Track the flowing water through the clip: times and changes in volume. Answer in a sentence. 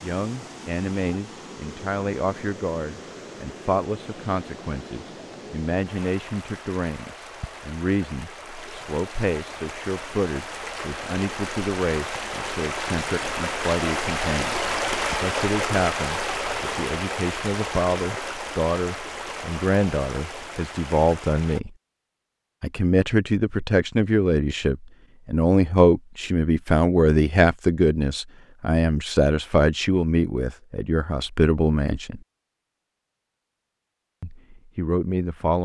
You can hear the flowing water from 0.0 to 21.6 s, getting louder then quieter.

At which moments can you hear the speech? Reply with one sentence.
The speech can be heard from 0.0 to 14.6 s, from 15.2 to 21.7 s, from 22.6 to 32.2 s and from 34.2 to 35.6 s.